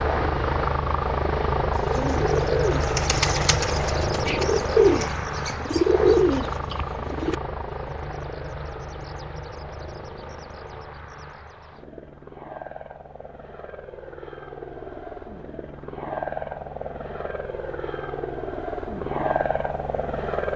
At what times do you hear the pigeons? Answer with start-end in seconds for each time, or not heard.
1.8-7.3.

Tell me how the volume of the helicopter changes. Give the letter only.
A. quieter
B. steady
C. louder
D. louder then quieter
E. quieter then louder
E.